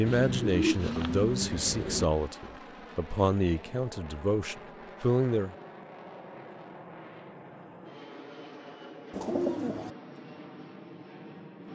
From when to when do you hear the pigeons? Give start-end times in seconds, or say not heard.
0.1-2.0, 9.1-9.9.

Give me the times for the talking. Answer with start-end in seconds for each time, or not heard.
0.0-5.5.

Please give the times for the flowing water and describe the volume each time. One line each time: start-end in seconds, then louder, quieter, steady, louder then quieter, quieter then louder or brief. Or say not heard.
not heard.